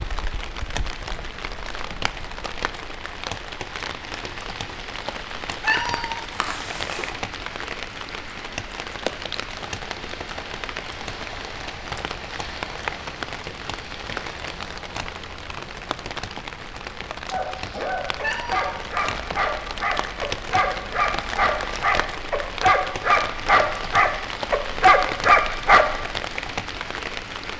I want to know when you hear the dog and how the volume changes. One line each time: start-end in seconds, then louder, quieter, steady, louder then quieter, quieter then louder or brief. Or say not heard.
17.3-26.1 louder.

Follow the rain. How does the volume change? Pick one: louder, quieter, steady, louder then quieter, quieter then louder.
steady.